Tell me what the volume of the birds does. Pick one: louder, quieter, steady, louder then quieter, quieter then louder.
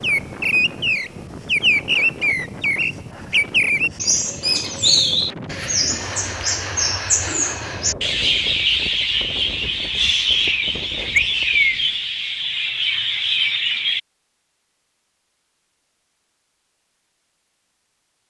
steady.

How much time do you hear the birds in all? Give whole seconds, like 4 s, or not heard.
14 s.